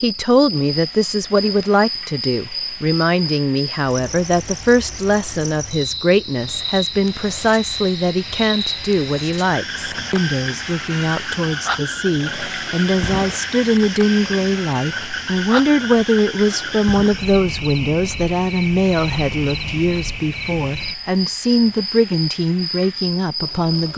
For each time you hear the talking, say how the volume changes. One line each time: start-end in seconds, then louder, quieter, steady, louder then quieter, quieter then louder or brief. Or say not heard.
0.0-23.9 steady.